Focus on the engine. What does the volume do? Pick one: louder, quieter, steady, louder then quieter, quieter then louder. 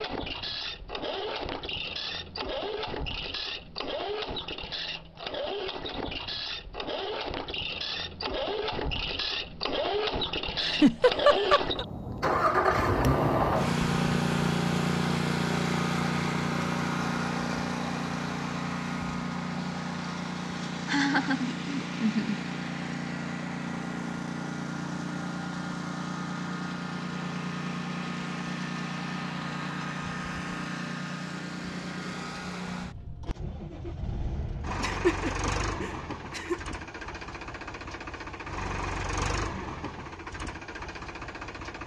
louder then quieter.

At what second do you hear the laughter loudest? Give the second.
11 s.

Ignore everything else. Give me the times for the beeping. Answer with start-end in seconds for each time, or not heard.
not heard.